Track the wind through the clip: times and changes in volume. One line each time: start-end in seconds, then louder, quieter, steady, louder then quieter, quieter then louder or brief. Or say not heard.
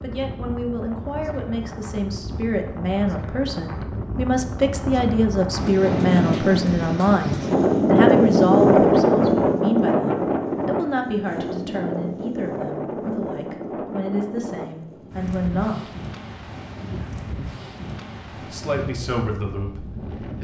0.0-20.3 louder then quieter.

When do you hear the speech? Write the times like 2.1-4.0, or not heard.
0.0-15.9, 18.4-20.3.